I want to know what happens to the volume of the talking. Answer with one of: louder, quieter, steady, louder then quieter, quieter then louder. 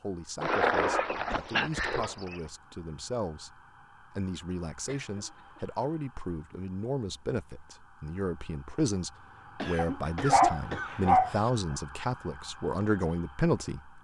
louder.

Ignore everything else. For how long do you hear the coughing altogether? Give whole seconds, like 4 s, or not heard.
3 s.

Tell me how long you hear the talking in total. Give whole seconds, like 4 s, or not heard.
14 s.